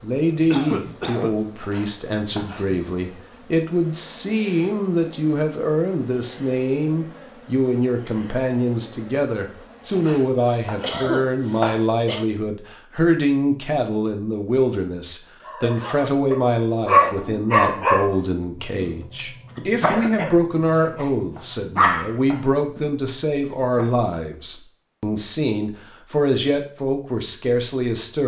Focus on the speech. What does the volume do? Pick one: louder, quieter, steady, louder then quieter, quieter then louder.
steady.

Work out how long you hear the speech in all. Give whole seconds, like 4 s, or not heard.
28 s.